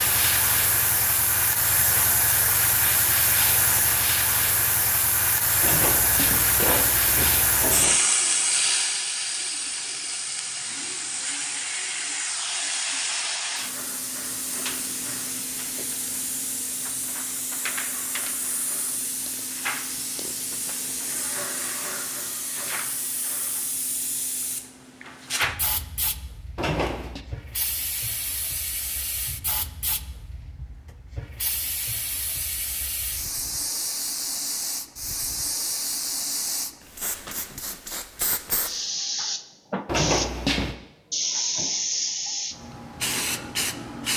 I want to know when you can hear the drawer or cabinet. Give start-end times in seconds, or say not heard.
5.6-8.0, 26.6-27.2, 39.9-40.8.